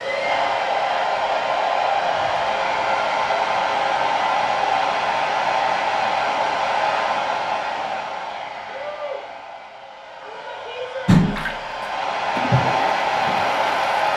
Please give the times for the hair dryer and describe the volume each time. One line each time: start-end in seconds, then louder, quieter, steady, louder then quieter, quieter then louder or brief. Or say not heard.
0.0-14.1 quieter then louder.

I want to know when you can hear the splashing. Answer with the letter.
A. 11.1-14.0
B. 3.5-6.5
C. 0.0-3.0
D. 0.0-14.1
A.